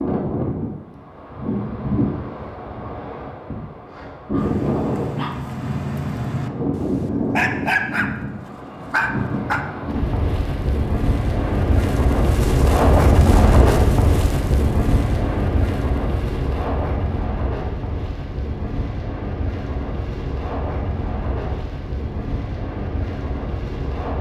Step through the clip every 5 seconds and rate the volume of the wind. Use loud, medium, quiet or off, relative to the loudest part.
medium, medium, loud, medium, medium.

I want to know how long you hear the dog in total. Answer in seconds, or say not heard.
5 s.